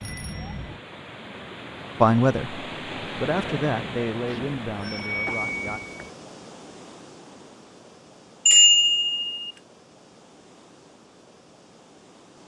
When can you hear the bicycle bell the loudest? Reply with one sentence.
The volume of the bicycle bell peaks at 9 seconds.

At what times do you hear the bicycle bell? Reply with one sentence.
The bicycle bell can be heard from 0.0 to 0.8 s, from 4.2 to 6.1 s and from 8.4 to 9.5 s.